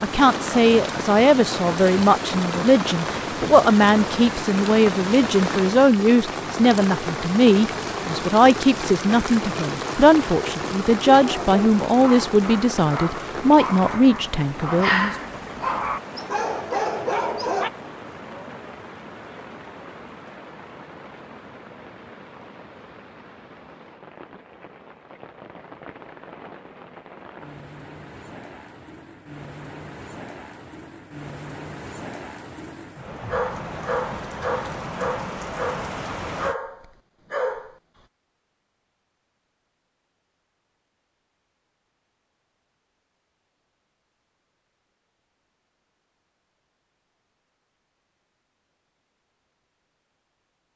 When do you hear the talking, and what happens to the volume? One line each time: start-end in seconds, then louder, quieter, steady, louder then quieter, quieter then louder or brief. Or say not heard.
0.0-15.2 steady.